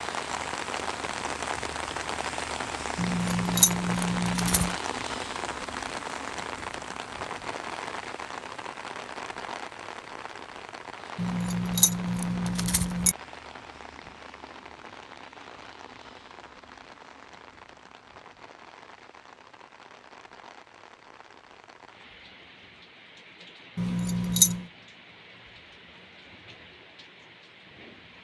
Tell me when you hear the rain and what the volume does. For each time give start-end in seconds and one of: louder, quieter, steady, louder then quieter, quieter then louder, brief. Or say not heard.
0.0-28.1 quieter.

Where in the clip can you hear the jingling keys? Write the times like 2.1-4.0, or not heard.
3.0-4.8, 11.2-13.2, 23.8-24.6.